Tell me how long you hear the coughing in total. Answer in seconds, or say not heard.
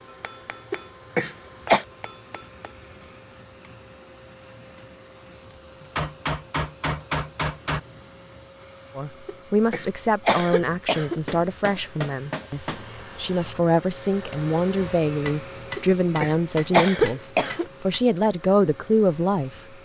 5 s.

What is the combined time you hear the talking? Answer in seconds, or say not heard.
11 s.